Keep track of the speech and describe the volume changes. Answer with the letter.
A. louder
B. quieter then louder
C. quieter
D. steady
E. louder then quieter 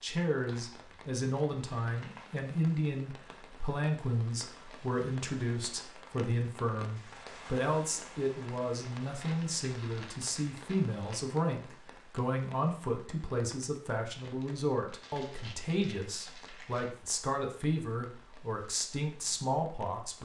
D.